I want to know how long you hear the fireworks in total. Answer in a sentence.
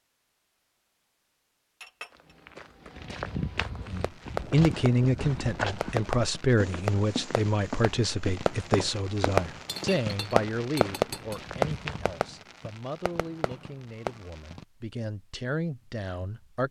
You can hear the fireworks for 11 seconds altogether.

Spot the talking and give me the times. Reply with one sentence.
You can hear the talking from 3.9 to 16.6 s.